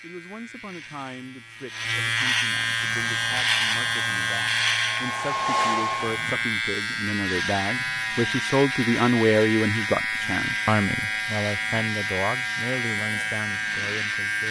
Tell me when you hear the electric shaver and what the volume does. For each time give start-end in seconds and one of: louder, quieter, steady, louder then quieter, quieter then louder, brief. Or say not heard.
0.0-14.4 steady.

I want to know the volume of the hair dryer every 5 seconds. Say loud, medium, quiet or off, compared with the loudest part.
quiet, loud, off.